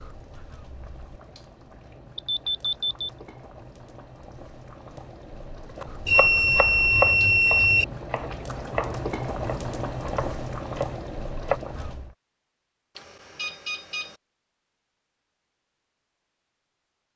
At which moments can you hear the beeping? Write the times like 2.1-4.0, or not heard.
2.1-3.1, 6.0-7.8, 12.9-14.2.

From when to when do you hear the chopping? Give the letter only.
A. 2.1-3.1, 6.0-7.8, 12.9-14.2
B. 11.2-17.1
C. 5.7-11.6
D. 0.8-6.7
C.